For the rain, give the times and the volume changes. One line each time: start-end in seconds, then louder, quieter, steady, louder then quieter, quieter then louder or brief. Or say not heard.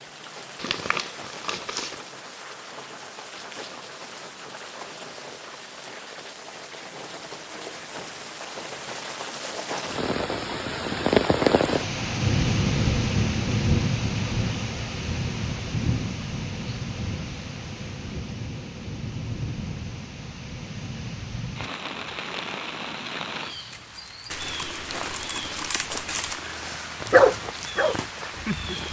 0.0-28.8 louder then quieter.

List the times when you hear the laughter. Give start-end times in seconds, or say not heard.
not heard.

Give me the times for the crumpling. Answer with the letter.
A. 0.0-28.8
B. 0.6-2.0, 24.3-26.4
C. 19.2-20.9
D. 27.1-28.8
B.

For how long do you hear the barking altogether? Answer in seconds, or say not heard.
2 s.